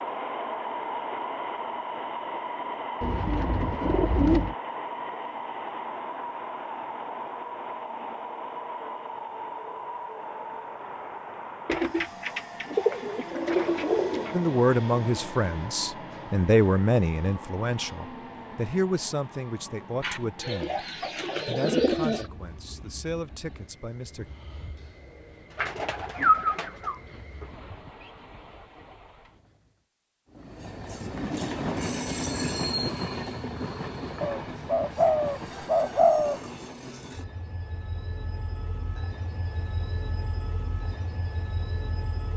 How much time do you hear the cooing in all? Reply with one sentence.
The cooing can be heard for 11 seconds in total.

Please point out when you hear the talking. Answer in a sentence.
The talking can be heard from 14.3 to 20.8 s and from 21.4 to 24.3 s.